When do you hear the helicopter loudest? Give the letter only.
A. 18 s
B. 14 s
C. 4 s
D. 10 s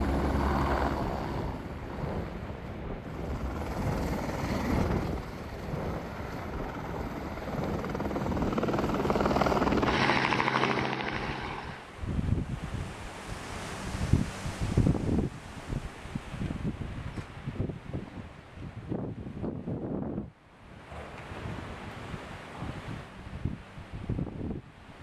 D.